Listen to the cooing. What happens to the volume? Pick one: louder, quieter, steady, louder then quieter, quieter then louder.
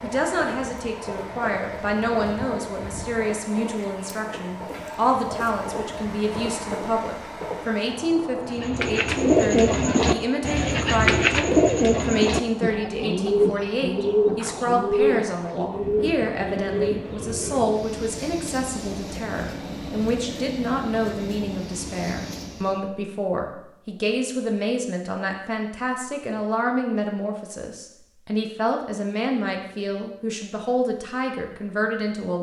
quieter.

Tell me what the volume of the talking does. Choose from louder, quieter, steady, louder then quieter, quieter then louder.
steady.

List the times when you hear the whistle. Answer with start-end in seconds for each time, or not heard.
not heard.